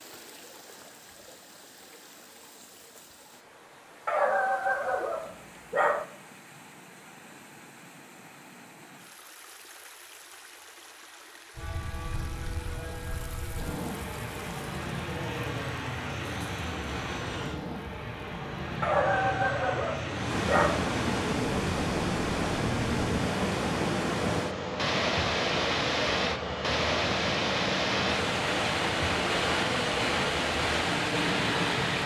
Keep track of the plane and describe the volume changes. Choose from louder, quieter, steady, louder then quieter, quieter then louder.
steady.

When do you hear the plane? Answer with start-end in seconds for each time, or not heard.
11.6-32.0.